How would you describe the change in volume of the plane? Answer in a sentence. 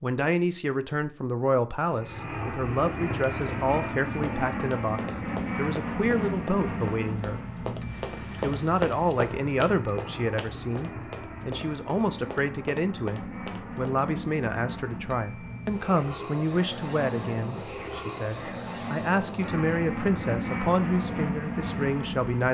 The loudness of the plane goes down, then up.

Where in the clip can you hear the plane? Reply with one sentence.
The plane can be heard from 1.9 to 22.4 s.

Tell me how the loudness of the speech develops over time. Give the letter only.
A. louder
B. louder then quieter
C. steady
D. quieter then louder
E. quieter
C.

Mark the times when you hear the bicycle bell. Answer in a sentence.
You can hear the bicycle bell from 7.8 to 8.6 s and from 15.1 to 15.9 s.